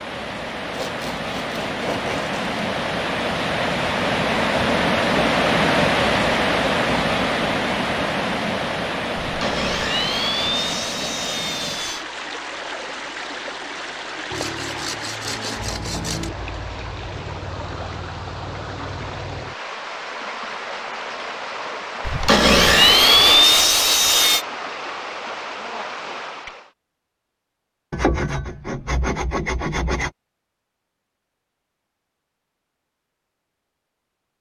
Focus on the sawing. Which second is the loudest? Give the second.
23 s.